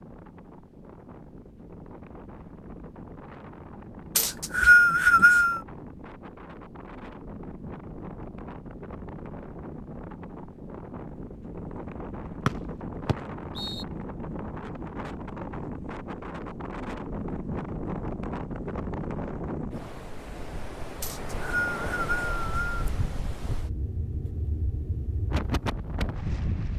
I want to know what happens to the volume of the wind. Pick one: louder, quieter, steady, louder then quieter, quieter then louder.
louder.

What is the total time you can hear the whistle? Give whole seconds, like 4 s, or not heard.
5 s.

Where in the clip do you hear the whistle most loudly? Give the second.
5 s.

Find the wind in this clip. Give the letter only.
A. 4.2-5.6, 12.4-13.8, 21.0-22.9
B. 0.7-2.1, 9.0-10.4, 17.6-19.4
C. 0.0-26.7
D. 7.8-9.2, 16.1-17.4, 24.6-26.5
C.